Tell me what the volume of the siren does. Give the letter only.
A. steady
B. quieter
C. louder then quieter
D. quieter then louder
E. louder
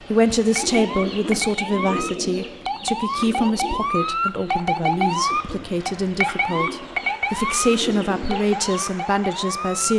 C.